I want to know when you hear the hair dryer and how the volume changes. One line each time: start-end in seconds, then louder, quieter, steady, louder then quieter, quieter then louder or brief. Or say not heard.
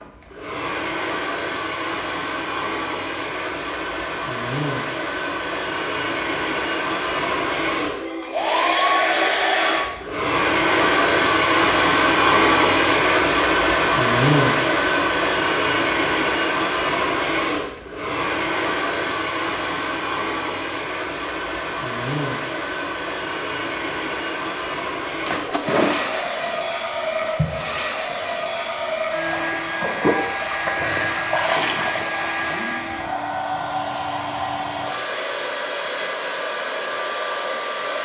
0.0-38.0 louder then quieter.